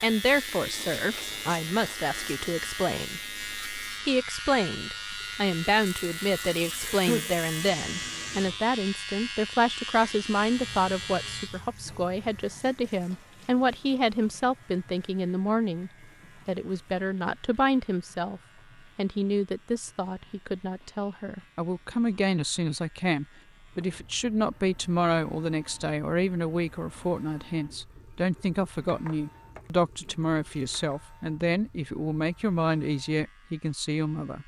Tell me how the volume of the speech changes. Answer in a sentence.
The loudness of the speech stays about the same.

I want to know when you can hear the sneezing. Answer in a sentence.
The sneezing can be heard from 6.8 to 7.3 s.